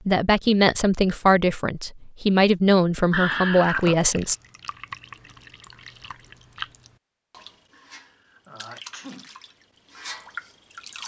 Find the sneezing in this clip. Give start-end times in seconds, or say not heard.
3.1-4.0, 7.7-9.3.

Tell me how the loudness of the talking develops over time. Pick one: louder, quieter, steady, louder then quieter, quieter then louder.
steady.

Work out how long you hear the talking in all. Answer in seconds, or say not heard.
4 s.